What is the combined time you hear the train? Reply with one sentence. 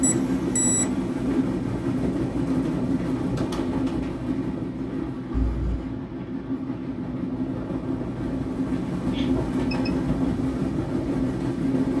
The train can be heard for 12 seconds in total.